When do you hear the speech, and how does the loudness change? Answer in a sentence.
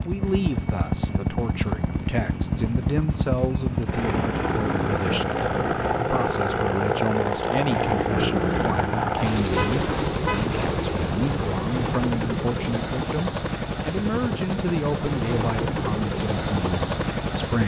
You can hear the speech from 0.0 to 17.6 s, at a steady volume.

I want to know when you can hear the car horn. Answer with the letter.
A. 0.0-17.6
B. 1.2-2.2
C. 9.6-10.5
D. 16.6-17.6
C.